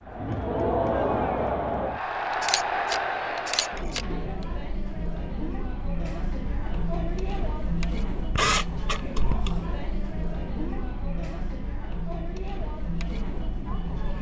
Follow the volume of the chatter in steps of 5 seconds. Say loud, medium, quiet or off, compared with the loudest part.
loud, medium, medium.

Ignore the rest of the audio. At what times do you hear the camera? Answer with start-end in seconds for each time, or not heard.
2.4-4.0, 8.3-9.6.